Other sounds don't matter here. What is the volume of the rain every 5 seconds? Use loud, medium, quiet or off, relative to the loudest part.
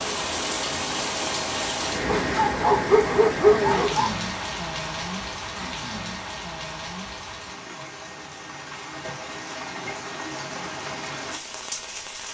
loud, medium, medium.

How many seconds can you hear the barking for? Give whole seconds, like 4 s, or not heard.
2 s.